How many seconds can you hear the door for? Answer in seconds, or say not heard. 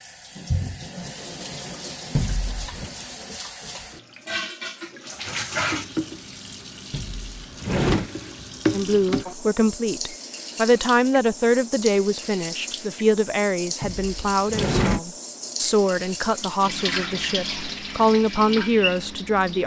3 s.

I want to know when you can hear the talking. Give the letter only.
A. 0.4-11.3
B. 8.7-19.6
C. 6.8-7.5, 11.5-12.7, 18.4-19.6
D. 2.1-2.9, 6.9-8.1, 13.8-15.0
B.